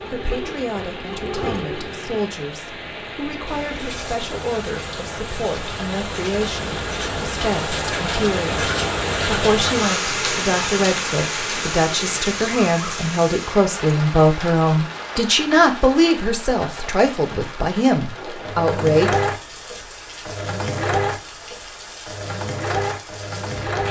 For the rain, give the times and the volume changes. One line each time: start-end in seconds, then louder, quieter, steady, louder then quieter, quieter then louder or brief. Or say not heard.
0.0-23.8 louder then quieter.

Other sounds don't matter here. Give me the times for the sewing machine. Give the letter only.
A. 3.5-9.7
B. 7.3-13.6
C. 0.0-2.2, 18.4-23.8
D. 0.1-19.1
C.